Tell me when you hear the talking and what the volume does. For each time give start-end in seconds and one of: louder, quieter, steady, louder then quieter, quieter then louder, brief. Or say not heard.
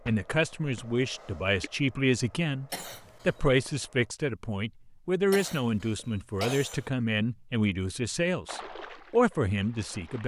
0.1-10.2 steady.